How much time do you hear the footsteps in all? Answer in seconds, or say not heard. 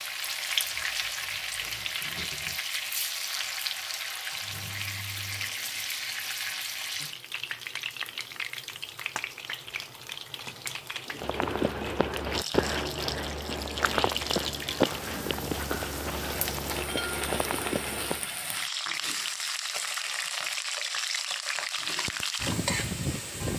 7 s.